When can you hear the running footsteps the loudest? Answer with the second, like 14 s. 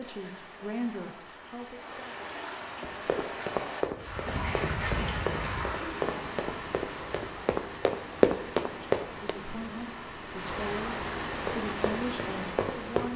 8 s.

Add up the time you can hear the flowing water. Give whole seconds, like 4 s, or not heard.
13 s.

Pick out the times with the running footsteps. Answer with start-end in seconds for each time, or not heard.
2.8-9.3, 11.4-13.1.